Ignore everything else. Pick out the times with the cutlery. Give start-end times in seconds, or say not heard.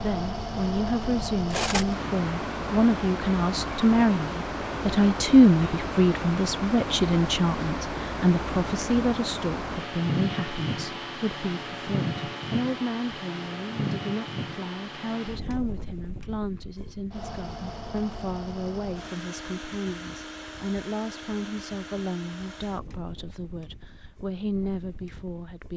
1.5-1.9.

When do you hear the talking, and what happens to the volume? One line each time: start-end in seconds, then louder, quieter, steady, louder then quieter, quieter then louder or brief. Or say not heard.
0.0-25.7 quieter.